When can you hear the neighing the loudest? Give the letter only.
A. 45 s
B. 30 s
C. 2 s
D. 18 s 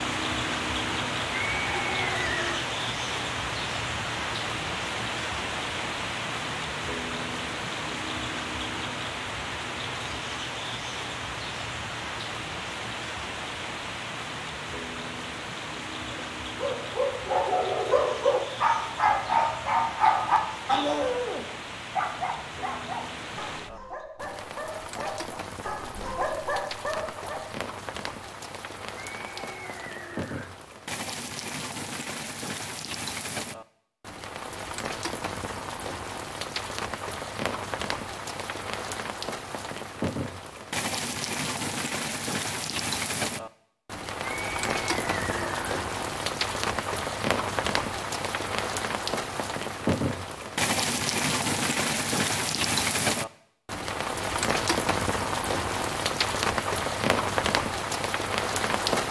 C.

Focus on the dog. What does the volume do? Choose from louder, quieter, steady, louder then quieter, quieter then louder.
quieter then louder.